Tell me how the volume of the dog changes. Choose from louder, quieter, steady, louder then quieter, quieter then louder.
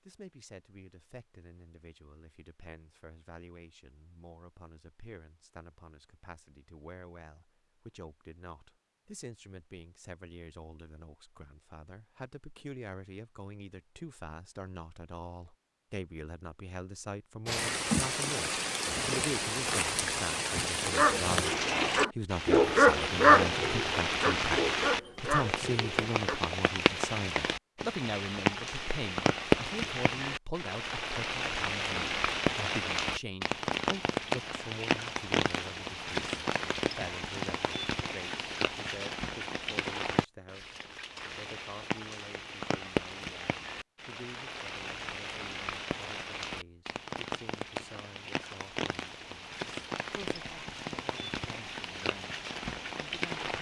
louder then quieter.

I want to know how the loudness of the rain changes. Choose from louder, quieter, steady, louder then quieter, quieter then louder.
quieter.